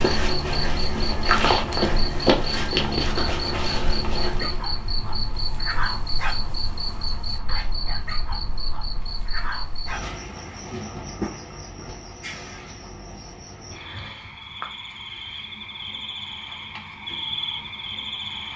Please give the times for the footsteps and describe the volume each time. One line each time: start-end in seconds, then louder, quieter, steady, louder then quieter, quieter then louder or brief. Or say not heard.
0.0-4.7 louder then quieter.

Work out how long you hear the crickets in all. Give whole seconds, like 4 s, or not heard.
18 s.